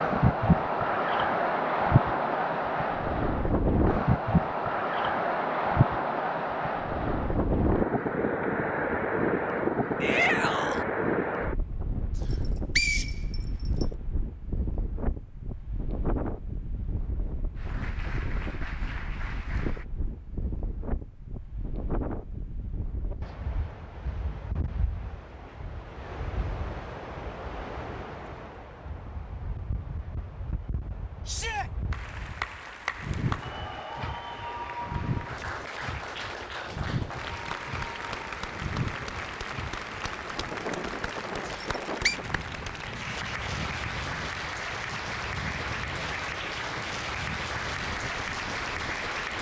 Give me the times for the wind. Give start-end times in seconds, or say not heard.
0.0-49.3.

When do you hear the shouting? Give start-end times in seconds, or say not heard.
10.0-10.8, 31.2-31.7.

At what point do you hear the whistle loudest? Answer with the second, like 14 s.
13 s.